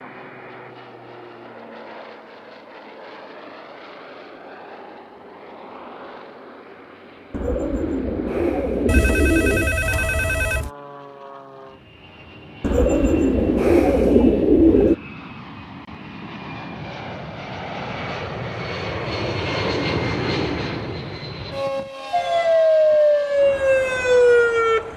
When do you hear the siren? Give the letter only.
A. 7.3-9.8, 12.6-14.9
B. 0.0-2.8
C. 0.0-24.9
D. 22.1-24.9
D.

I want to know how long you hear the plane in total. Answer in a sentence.
The plane can be heard for 25 seconds in total.